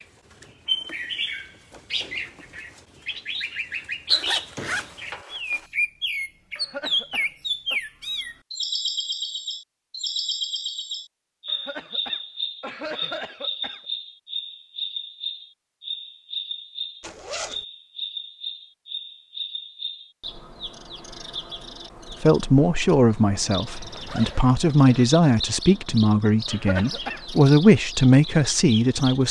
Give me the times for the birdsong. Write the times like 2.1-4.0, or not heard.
0.0-29.2.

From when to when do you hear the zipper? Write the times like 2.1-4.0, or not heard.
4.1-5.7, 17.0-17.6, 23.8-25.1.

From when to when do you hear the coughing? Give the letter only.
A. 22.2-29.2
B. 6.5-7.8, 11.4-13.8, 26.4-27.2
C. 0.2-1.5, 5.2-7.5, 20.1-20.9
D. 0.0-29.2
B.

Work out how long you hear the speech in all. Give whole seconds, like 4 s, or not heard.
7 s.